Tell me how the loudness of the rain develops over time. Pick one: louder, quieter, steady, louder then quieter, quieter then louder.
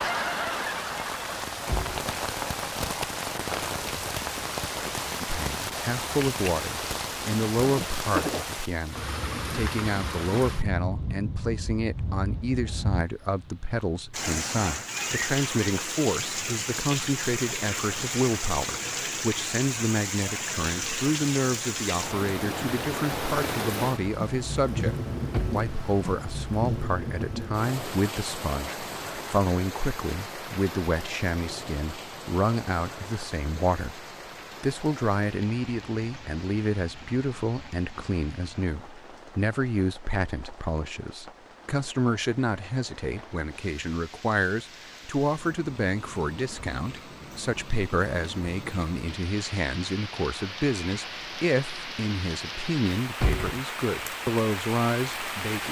quieter then louder.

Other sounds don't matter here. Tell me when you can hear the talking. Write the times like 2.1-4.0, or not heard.
5.2-55.6.